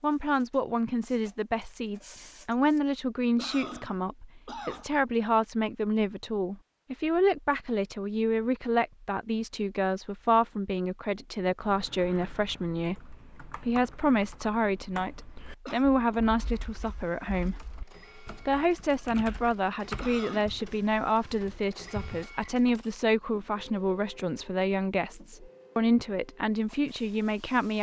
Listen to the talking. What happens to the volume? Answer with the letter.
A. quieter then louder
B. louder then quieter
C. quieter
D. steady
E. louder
D.